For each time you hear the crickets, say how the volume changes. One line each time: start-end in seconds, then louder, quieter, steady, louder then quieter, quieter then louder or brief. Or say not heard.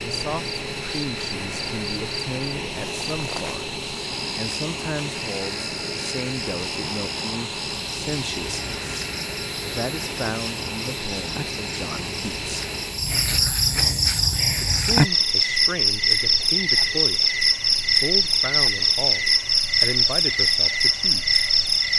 0.0-21.9 louder.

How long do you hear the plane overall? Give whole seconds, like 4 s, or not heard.
22 s.